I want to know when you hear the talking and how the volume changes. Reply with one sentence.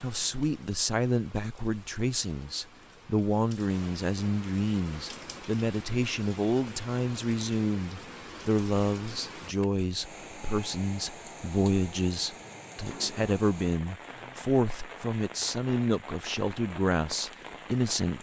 The talking can be heard from 0.0 to 18.1 s, at a steady volume.